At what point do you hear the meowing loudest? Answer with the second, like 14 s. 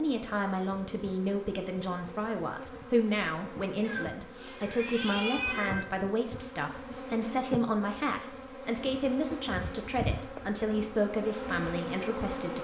5 s.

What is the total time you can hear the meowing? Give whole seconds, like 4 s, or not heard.
2 s.